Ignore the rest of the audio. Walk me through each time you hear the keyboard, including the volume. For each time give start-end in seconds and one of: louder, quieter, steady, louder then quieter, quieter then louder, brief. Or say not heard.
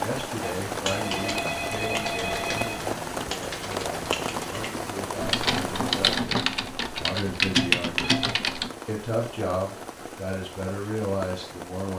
0.7-8.7 louder.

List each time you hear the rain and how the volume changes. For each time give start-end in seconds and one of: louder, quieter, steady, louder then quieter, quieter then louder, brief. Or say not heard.
0.0-11.9 quieter.